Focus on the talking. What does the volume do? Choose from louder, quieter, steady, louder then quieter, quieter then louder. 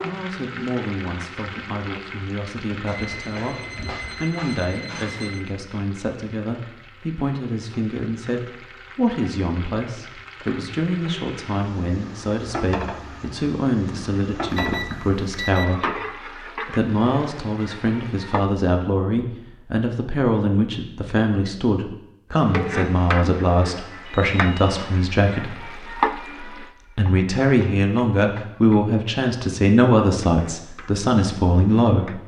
louder.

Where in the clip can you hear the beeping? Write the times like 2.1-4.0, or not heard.
2.9-5.4, 14.5-15.7, 24.1-24.8.